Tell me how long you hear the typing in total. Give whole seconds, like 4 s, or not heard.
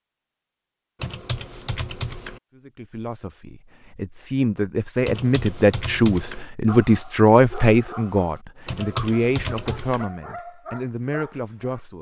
4 s.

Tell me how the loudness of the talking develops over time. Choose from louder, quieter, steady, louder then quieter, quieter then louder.
louder then quieter.